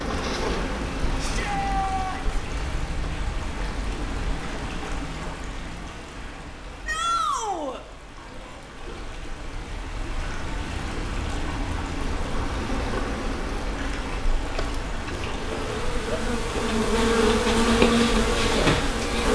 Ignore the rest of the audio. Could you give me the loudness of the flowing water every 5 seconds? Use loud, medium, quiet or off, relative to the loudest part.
loud, medium, loud, loud.